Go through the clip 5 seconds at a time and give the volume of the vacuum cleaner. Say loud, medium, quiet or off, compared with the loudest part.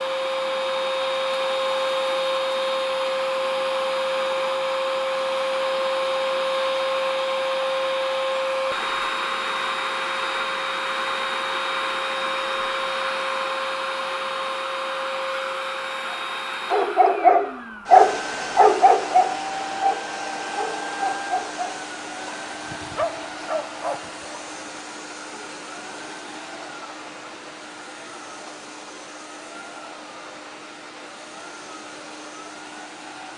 loud, loud, loud, medium, medium, quiet, quiet.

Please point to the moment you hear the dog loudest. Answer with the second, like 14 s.
18 s.